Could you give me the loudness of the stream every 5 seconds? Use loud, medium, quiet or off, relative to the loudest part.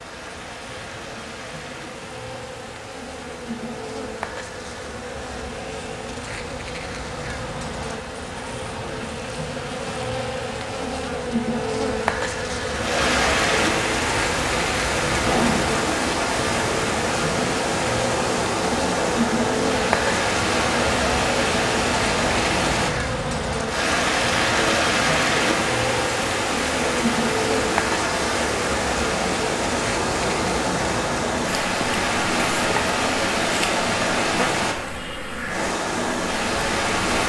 quiet, quiet, loud, loud, loud, loud, loud, loud.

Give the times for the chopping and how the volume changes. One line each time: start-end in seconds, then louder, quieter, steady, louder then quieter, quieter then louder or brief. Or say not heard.
not heard.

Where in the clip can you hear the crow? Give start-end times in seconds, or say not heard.
not heard.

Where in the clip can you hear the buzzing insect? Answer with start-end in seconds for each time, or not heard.
0.0-37.2.